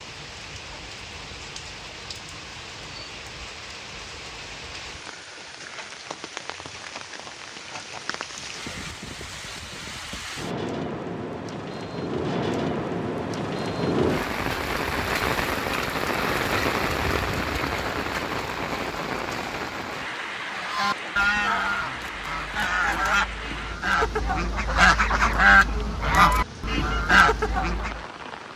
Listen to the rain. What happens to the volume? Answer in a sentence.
The volume of the rain goes up, then down.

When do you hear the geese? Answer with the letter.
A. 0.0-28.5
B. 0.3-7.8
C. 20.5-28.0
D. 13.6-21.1
C.